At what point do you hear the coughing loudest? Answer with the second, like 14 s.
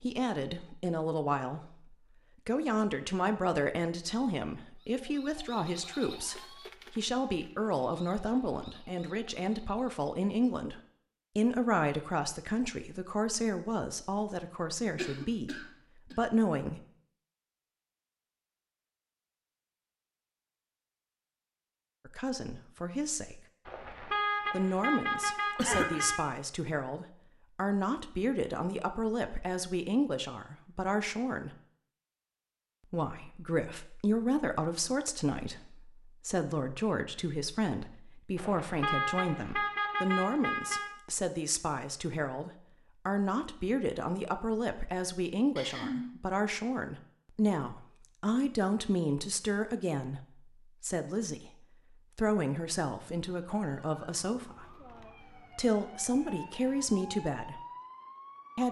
26 s.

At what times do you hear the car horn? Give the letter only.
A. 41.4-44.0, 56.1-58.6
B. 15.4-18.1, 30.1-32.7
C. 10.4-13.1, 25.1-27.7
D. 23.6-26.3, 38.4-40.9
D.